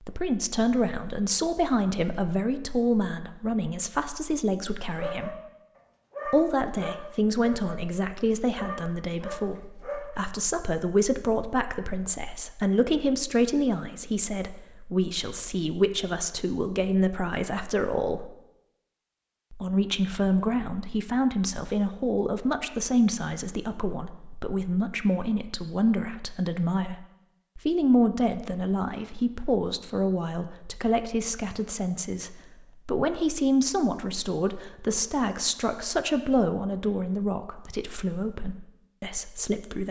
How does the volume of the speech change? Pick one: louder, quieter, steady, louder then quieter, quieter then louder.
steady.